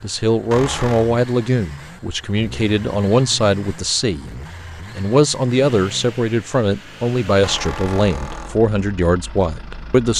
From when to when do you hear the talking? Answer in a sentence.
The talking can be heard from 0.0 to 4.3 s and from 5.0 to 10.1 s.